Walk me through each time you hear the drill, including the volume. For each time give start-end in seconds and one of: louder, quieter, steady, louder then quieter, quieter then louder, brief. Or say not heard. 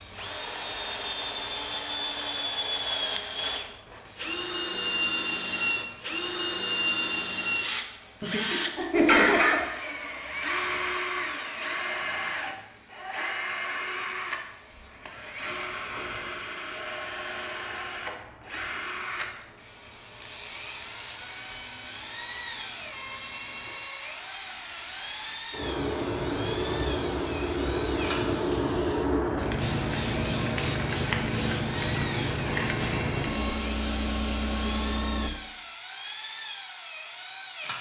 0.0-37.7 quieter.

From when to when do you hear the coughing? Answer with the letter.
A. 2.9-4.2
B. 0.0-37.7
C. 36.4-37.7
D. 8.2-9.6
D.